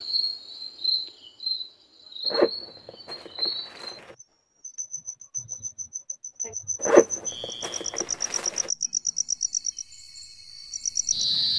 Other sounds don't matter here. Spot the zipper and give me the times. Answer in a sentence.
The zipper can be heard from 2.2 to 4.2 s and from 6.8 to 8.7 s.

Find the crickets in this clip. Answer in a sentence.
You can hear the crickets from 0.0 to 11.5 s.